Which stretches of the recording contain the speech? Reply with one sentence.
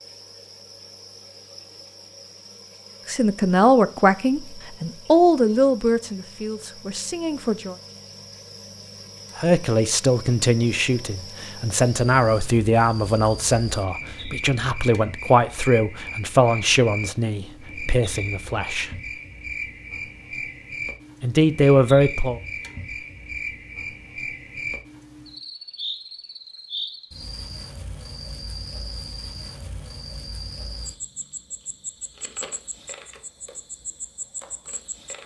You can hear the speech from 3.0 to 7.8 s, from 9.3 to 18.9 s and from 21.2 to 22.4 s.